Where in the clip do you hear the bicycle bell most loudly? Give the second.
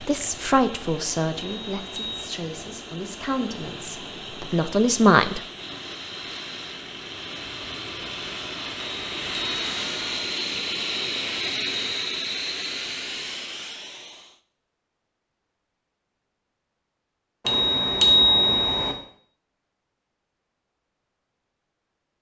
18 s.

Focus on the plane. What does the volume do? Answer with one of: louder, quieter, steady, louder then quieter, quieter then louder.
louder.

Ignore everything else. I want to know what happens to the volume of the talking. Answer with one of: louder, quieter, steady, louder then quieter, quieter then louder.
quieter then louder.